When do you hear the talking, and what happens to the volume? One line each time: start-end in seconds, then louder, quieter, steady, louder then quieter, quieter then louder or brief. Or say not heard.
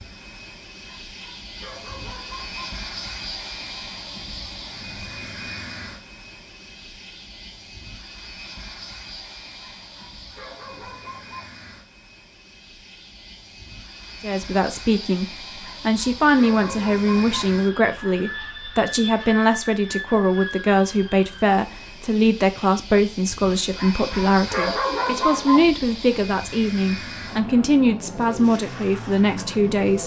14.2-30.0 steady.